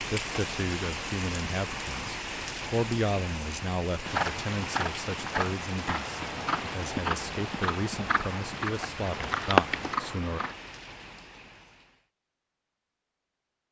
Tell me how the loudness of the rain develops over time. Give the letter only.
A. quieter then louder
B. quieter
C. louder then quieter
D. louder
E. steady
B.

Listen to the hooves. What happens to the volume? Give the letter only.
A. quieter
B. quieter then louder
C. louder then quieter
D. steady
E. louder
E.